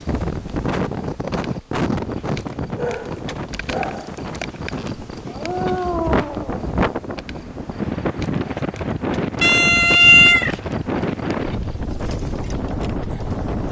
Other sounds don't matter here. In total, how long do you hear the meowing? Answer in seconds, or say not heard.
3 s.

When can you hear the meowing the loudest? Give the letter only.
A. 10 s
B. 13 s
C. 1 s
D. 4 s
A.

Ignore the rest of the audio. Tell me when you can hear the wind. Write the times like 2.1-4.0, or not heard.
0.0-13.6.